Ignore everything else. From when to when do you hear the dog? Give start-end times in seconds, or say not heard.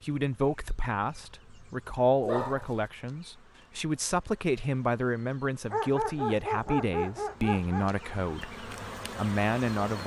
2.2-2.9, 5.7-7.9.